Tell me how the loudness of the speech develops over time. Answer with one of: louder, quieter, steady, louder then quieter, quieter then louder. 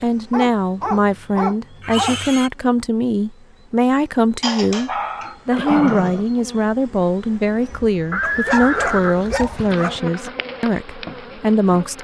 steady.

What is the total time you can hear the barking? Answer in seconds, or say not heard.
6 s.